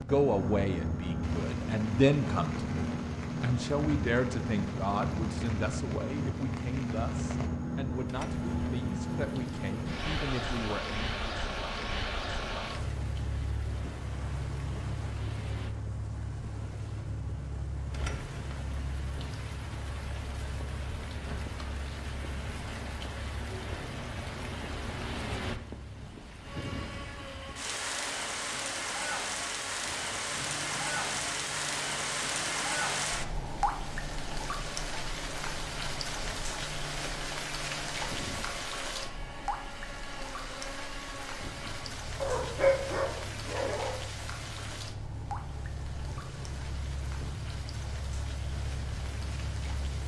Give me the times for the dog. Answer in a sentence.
You can hear the dog from 42.2 to 44.0 s.